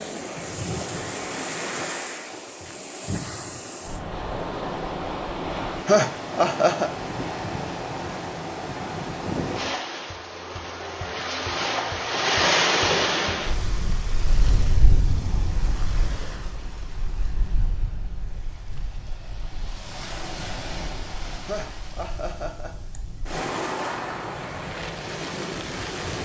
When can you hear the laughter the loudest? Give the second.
6 s.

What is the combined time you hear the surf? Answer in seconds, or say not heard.
26 s.